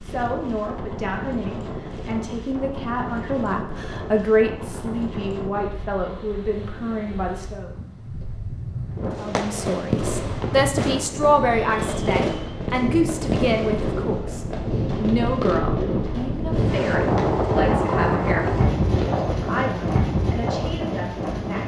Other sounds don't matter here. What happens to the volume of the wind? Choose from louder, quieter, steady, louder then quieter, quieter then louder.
louder.